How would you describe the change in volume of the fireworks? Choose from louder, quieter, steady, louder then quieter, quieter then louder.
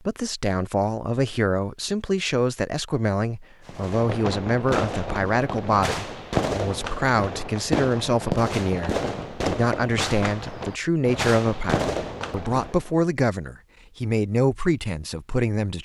steady.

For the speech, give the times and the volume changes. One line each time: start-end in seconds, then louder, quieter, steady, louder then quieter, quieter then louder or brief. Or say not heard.
0.1-15.8 steady.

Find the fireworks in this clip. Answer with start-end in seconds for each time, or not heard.
3.6-12.8.